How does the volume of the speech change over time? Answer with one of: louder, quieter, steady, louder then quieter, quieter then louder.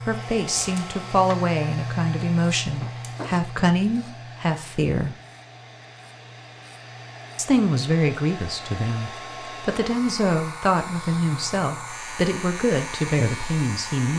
steady.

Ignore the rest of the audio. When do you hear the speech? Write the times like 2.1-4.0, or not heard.
0.1-5.2, 7.3-14.1.